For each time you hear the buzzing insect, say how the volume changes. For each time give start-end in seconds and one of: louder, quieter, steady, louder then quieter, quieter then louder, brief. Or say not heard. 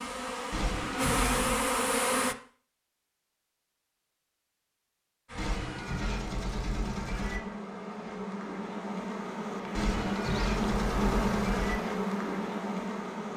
0.0-2.4 brief
5.2-13.3 louder.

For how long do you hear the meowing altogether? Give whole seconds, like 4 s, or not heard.
5 s.